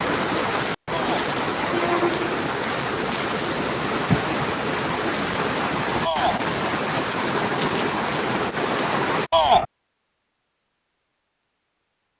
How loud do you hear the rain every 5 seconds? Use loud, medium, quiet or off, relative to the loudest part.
loud, loud, off.